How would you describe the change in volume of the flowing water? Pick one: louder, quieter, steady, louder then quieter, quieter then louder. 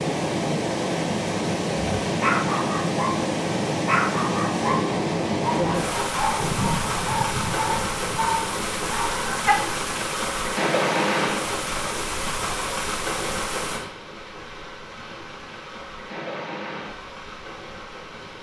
quieter.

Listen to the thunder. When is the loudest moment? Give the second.
7 s.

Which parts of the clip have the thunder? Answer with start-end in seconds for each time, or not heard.
6.4-8.3.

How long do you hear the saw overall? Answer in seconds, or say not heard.
not heard.